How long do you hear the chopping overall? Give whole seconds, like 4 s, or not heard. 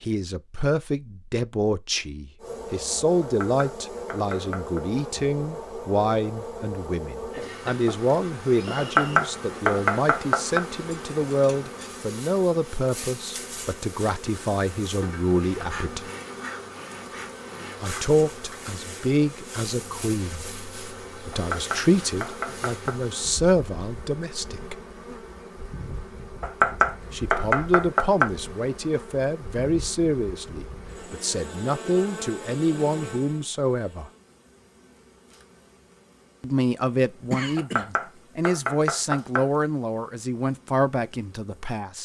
9 s.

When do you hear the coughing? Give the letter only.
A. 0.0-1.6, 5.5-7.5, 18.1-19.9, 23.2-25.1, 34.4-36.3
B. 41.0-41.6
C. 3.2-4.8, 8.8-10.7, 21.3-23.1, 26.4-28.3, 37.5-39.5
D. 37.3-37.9
D.